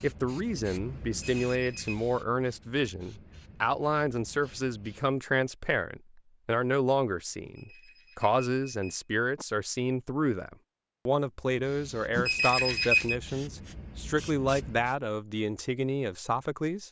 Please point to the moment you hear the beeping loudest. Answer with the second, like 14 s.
13 s.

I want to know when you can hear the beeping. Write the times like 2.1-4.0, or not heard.
1.1-1.9, 7.5-9.4, 12.2-13.2.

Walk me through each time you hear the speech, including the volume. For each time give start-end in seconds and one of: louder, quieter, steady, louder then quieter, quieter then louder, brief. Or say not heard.
0.0-16.8 steady.